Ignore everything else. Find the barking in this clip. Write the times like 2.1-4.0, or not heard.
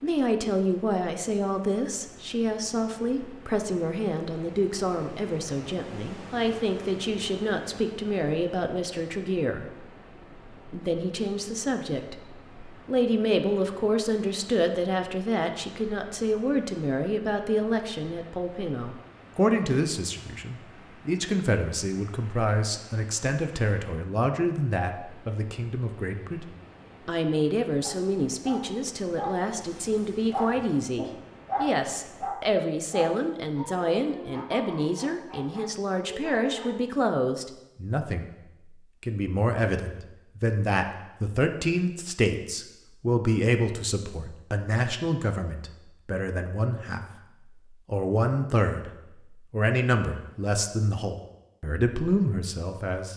27.8-36.8.